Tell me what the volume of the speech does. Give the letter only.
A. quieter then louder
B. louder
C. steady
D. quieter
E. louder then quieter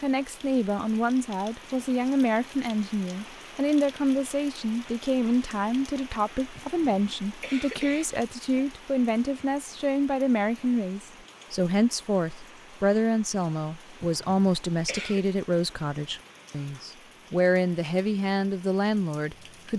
C.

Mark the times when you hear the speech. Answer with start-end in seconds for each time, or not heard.
0.0-19.7.